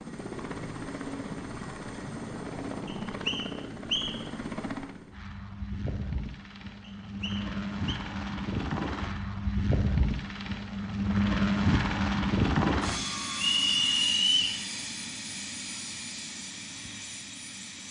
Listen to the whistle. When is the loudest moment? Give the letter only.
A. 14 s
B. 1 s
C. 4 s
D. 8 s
A.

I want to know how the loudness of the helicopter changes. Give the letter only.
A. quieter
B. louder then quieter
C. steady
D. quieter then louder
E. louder
B.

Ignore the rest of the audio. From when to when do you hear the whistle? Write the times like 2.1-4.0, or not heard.
2.9-4.3, 6.8-8.0, 13.6-14.6.